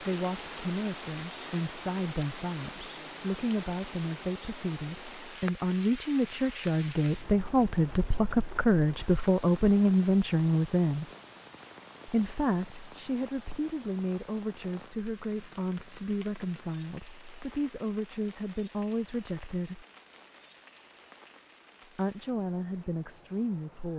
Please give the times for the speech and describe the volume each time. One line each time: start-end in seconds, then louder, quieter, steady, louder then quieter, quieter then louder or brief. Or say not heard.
0.0-11.1 louder
12.1-19.9 steady
21.9-23.9 brief.